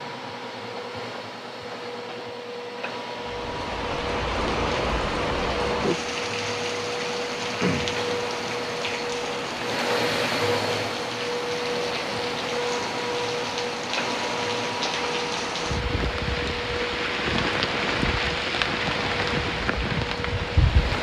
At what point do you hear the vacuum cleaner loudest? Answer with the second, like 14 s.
10 s.